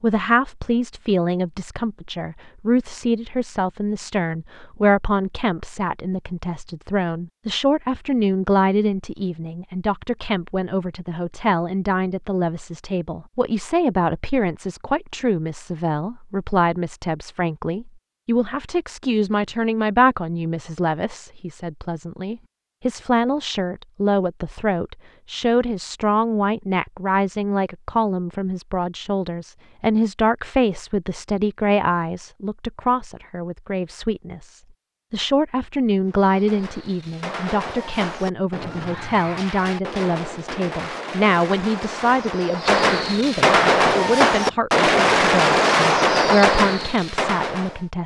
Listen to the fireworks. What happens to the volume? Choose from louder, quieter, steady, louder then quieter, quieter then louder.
louder.